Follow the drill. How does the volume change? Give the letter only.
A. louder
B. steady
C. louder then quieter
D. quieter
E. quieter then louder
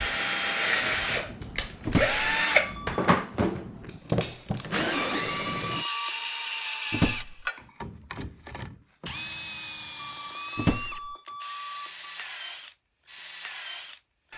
D.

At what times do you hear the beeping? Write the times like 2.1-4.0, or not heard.
2.5-3.0, 5.0-6.2, 9.9-12.1.